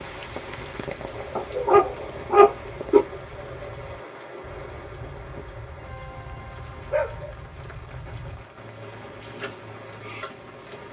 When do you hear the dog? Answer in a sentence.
You can hear the dog from 1.4 to 3.0 s and from 6.8 to 7.8 s.